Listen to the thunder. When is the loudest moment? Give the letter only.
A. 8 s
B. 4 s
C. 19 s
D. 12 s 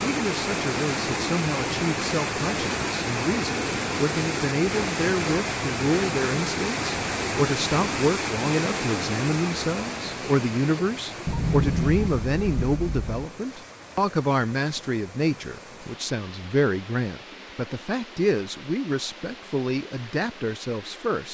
D.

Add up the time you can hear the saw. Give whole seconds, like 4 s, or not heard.
not heard.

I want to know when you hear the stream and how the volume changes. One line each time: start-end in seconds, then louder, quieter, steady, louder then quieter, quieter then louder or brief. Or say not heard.
0.0-21.3 quieter.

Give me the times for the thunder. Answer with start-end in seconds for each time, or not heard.
11.2-13.2.